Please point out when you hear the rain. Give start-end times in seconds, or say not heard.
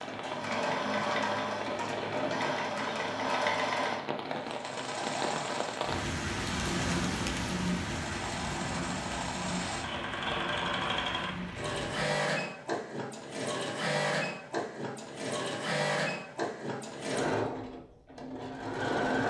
0.0-12.1.